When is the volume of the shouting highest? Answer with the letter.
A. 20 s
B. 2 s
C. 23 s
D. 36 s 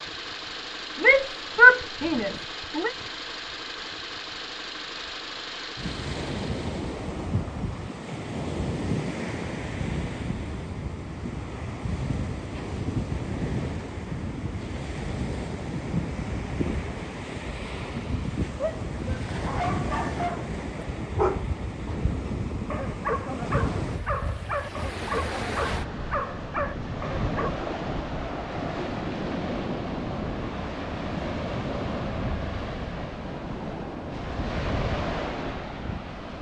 B.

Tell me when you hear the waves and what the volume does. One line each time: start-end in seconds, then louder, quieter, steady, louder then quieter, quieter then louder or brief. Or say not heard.
5.8-36.3 steady.